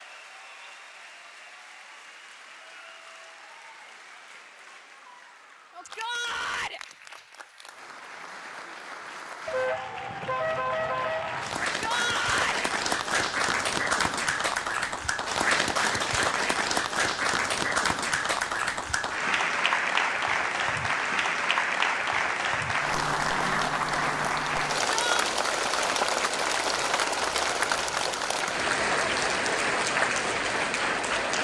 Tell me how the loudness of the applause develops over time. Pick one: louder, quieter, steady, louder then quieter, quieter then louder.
louder.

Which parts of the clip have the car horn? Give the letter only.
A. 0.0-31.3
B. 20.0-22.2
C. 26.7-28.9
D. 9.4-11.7
D.